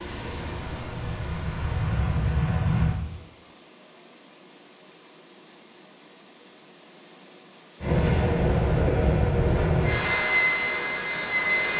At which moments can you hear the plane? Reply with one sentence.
You can hear the plane from 0.0 to 3.0 s and from 7.8 to 11.7 s.